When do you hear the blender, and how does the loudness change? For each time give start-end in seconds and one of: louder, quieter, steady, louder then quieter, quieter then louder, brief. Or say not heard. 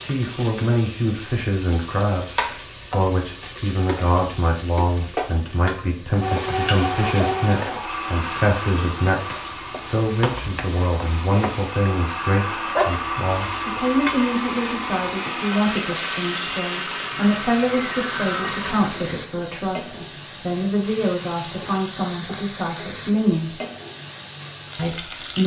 6.2-19.1 quieter then louder.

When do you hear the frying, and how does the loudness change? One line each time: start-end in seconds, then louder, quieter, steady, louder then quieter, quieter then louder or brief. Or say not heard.
0.0-25.4 steady.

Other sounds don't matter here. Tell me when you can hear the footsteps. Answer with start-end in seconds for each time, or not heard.
not heard.